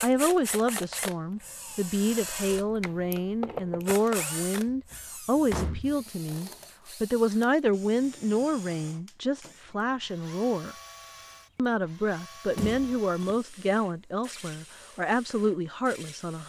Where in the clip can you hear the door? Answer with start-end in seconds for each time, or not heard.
4.7-6.0, 12.6-13.3.